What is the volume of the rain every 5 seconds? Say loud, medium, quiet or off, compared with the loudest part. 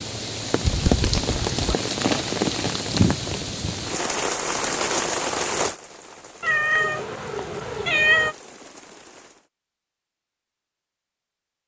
loud, medium, off.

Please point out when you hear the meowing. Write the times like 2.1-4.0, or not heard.
0.6-1.8, 6.4-8.3.